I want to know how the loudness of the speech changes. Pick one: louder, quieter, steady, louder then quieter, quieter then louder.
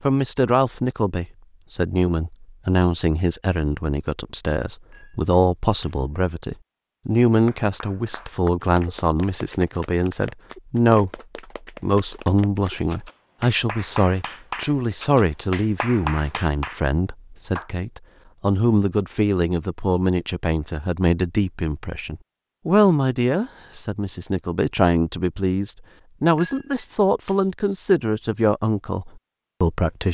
steady.